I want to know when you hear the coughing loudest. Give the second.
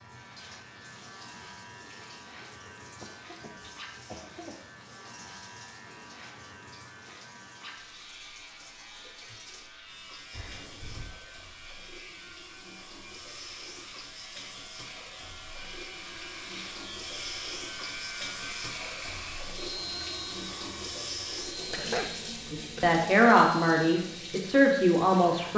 22 s.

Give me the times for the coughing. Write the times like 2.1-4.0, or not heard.
3.0-4.6, 10.3-11.1, 21.5-22.9.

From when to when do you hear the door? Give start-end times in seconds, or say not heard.
not heard.